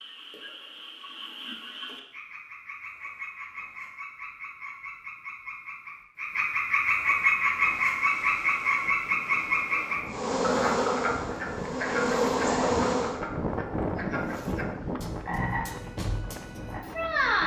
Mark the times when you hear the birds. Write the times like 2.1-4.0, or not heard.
not heard.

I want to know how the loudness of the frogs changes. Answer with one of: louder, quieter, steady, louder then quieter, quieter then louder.
louder then quieter.